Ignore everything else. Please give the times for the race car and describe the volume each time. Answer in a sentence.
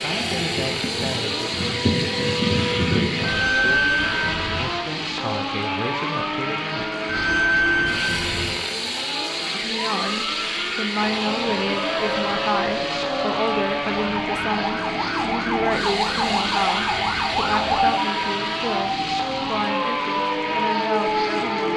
You can hear the race car from 0.0 to 21.7 s, at a steady volume.